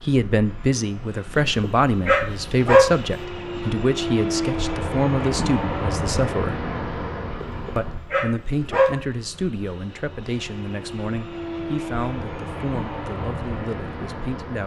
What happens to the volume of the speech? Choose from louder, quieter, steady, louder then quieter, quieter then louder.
quieter.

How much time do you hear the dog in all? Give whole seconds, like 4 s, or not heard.
3 s.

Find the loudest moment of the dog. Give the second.
3 s.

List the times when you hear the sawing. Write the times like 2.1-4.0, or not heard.
not heard.